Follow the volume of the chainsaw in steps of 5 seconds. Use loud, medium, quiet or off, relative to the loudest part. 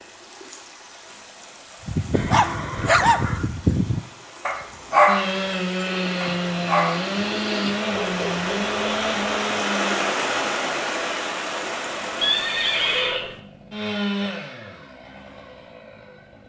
off, loud, medium, quiet.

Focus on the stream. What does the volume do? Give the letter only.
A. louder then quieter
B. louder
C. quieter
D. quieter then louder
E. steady
B.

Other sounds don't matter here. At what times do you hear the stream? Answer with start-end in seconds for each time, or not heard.
0.0-13.2.